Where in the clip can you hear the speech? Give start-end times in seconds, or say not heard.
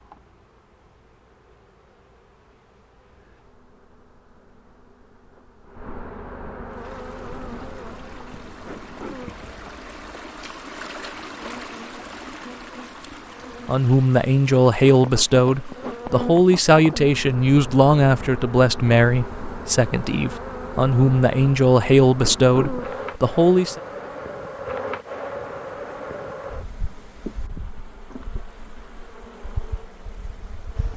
13.7-23.8.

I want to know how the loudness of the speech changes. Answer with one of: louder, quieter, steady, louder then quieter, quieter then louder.
steady.